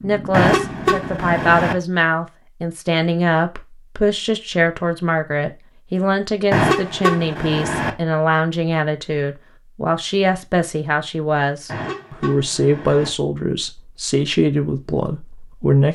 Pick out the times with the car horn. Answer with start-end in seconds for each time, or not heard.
0.3-1.8, 6.5-7.9, 11.7-13.1.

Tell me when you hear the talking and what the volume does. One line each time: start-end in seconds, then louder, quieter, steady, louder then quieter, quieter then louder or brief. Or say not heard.
0.0-15.9 steady.